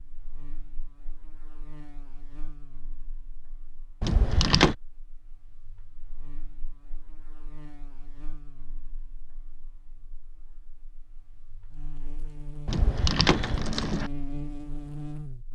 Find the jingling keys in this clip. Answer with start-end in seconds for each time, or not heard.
4.0-4.8, 12.7-14.1.